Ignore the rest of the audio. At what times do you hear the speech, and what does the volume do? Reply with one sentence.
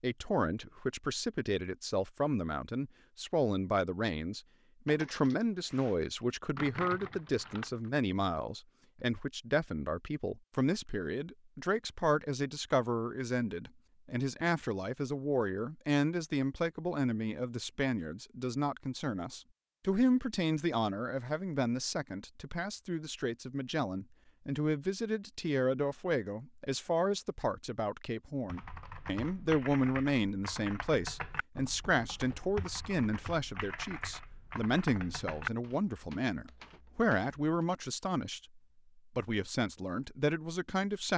The speech can be heard from 0.0 to 41.1 s, at a steady volume.